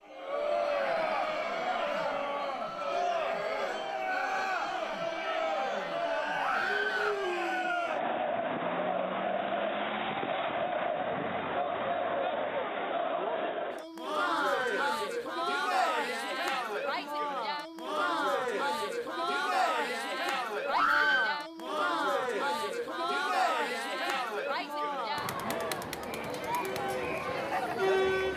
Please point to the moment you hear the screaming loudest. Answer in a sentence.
The volume of the screaming peaks at 21 seconds.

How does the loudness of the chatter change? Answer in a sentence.
The volume of the chatter stays about the same.